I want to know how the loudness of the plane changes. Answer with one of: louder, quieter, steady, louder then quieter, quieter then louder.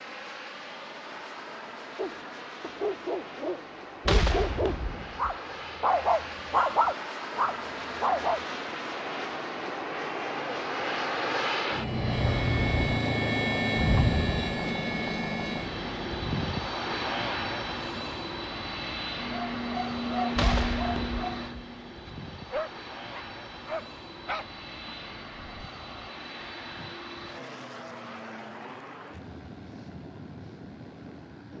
louder then quieter.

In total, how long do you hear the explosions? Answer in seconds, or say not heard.
2 s.